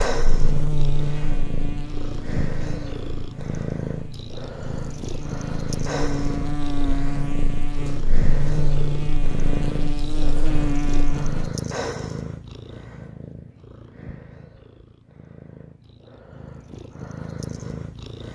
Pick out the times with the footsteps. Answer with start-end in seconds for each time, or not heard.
not heard.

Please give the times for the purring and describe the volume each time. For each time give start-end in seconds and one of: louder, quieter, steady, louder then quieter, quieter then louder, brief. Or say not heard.
0.0-18.2 quieter.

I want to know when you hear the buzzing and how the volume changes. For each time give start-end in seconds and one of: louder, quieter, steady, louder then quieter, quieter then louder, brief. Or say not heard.
0.1-11.5 quieter then louder.